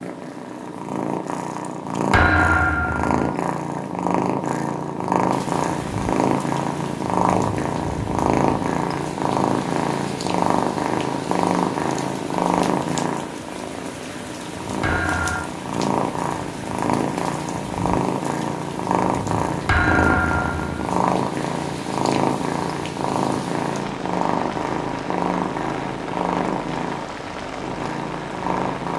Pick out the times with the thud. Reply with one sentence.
The thud can be heard from 2.1 to 3.1 s, from 14.8 to 15.4 s and from 19.6 to 20.8 s.